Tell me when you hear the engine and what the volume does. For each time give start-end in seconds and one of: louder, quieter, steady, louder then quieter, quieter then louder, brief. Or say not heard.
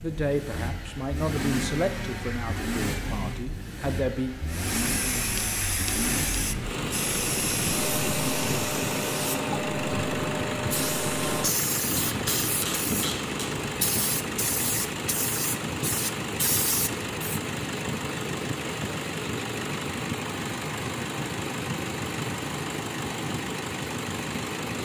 0.0-24.8 steady.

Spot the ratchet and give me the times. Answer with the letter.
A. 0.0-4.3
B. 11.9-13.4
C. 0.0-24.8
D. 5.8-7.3
B.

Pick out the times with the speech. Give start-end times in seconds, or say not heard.
0.0-4.3.